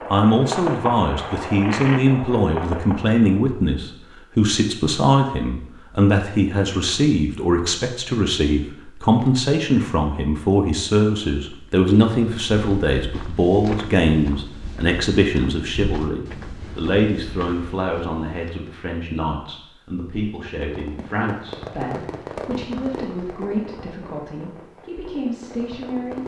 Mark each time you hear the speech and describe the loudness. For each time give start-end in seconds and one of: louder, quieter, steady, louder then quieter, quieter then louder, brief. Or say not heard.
0.1-26.2 quieter.